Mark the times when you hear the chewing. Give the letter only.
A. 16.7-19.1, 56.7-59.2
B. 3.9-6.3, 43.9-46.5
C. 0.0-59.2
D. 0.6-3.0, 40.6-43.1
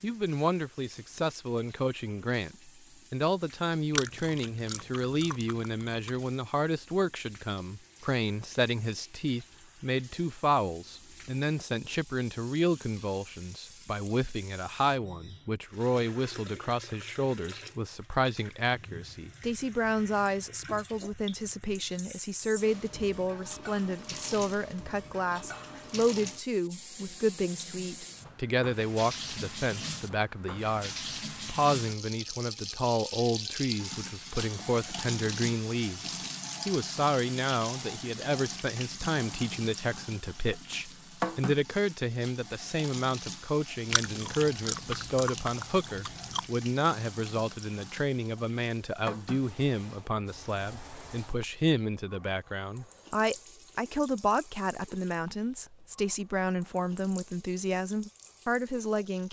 B.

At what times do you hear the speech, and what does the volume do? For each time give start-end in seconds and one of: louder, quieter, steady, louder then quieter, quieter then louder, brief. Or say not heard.
0.0-59.2 steady.